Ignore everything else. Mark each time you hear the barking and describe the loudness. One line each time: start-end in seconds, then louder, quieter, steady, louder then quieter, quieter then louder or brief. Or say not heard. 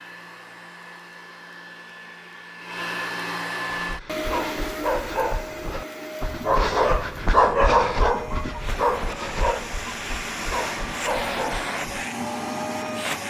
3.8-12.1 louder then quieter.